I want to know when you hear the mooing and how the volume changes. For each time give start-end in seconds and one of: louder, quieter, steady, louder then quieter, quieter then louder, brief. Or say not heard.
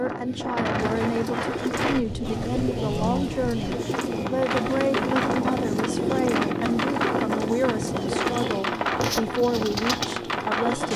not heard.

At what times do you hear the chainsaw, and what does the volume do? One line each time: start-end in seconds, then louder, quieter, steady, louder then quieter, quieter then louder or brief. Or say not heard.
0.0-10.9 louder then quieter.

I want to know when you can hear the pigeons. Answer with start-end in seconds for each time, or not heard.
0.8-10.2.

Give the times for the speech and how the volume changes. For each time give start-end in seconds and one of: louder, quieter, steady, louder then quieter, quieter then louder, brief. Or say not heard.
0.0-10.9 steady.